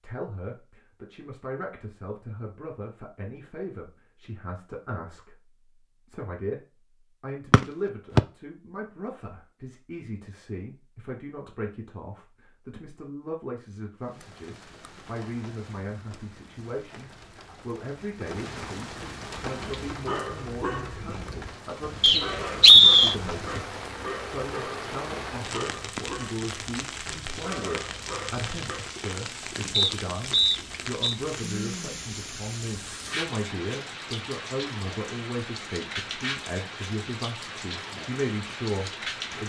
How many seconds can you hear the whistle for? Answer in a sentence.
You can hear the whistle for 3 seconds altogether.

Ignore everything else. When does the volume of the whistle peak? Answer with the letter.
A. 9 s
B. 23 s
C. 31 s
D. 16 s
B.